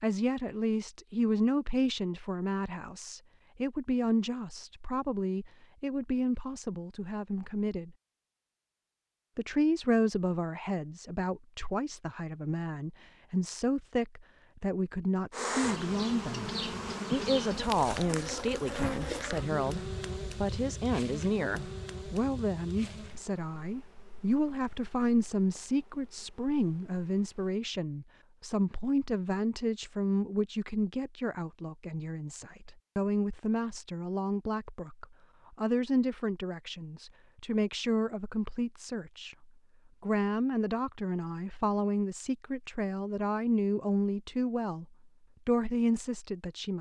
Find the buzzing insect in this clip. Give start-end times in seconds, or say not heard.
15.3-27.6.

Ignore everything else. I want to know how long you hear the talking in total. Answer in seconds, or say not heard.
44 s.